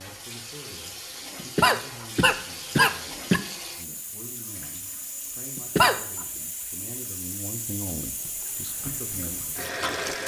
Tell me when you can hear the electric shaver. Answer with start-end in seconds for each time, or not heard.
not heard.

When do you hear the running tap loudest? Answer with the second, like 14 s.
10 s.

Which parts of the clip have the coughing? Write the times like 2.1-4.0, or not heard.
1.4-3.4, 5.5-6.0.